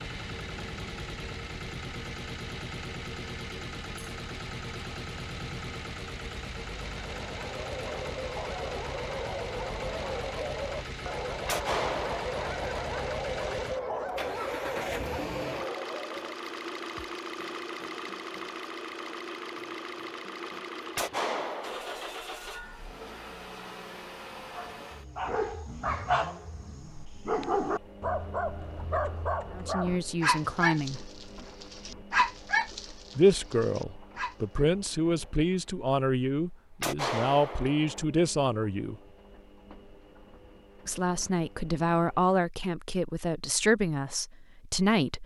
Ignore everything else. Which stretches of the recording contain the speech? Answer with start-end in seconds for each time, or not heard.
29.6-31.1, 33.1-39.0, 40.9-45.2.